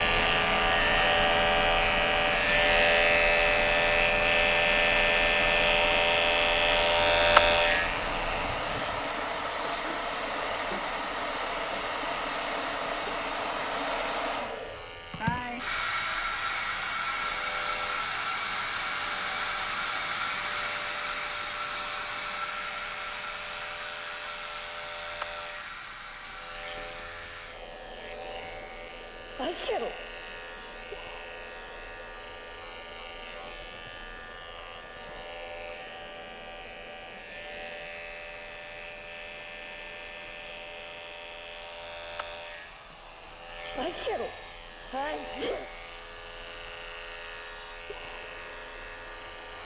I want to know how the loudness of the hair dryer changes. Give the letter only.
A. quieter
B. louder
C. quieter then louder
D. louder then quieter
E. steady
A.